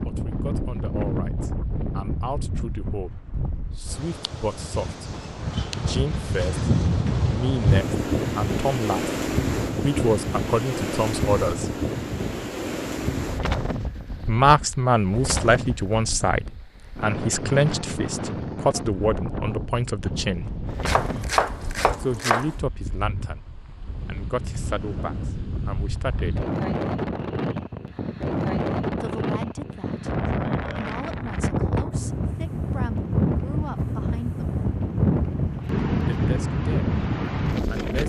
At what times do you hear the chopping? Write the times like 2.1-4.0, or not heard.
20.9-22.6.